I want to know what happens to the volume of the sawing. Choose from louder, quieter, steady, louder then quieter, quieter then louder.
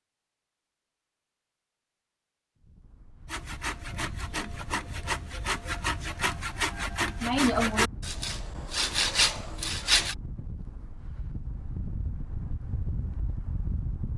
louder.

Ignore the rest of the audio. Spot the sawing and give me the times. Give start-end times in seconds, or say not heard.
3.2-10.2.